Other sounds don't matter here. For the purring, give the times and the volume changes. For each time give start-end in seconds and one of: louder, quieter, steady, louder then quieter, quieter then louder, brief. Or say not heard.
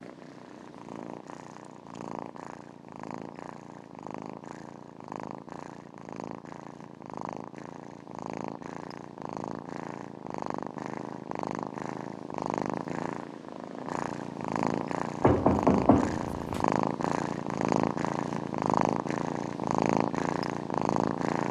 0.0-21.4 louder.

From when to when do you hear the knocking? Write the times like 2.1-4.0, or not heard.
15.2-16.6.